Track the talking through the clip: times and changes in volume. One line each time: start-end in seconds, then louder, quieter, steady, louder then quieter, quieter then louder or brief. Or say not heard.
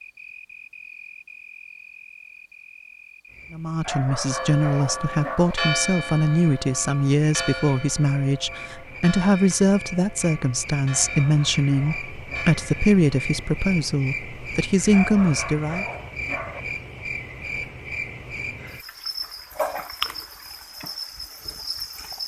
3.5-15.8 steady.